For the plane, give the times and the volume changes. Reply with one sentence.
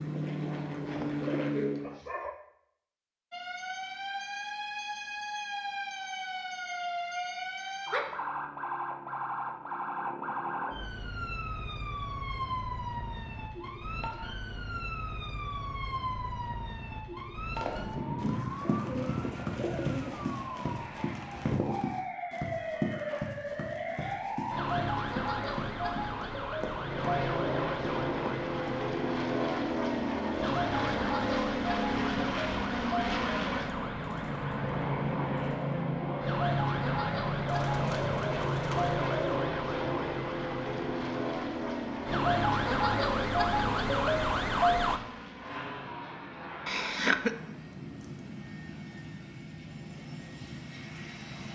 You can hear the plane briefly from 0.0 to 2.0 s; and from 26.6 to 51.5 s, getting quieter.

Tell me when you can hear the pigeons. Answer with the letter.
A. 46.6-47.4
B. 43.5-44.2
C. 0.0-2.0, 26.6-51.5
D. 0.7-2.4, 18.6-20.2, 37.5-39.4
D.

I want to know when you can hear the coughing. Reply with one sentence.
You can hear the coughing from 46.6 to 47.4 s.